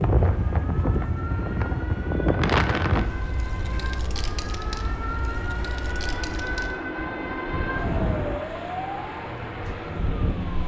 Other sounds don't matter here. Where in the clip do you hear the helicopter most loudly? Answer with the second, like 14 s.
8 s.